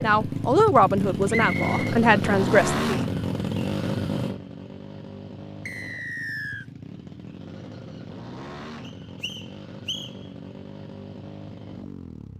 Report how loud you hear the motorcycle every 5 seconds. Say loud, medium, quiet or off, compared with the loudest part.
loud, quiet, quiet.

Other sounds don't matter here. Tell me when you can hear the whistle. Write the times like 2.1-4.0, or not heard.
1.3-1.9, 5.7-6.7, 8.8-10.1.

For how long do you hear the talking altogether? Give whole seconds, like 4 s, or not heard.
3 s.